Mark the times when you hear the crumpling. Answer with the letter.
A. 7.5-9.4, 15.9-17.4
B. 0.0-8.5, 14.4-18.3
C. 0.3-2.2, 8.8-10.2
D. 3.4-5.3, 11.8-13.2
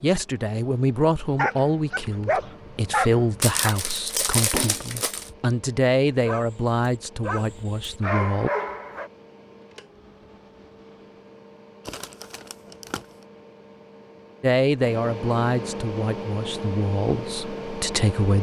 D.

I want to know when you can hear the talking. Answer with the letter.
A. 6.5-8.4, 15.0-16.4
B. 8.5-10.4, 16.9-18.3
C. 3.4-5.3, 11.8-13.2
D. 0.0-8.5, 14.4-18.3
D.